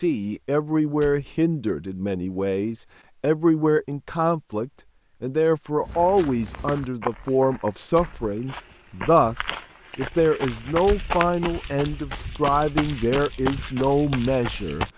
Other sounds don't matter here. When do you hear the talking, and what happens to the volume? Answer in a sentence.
You can hear the talking from 0.0 to 14.9 s, at a steady volume.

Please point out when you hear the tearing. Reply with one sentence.
You can't hear the tearing here.